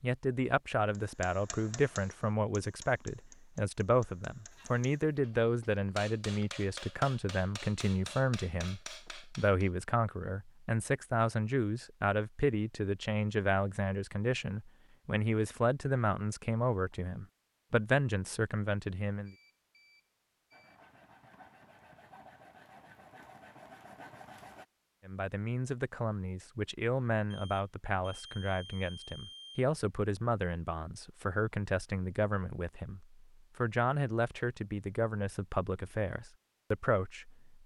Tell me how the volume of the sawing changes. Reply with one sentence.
The loudness of the sawing goes up.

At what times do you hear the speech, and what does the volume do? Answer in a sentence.
The speech can be heard from 0.0 to 19.4 s, at a steady volume; and from 25.1 to 37.6 s, at a steady volume.